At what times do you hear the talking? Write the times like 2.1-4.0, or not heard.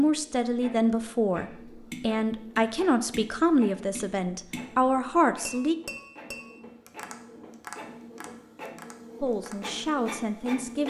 0.0-5.8, 9.2-10.8.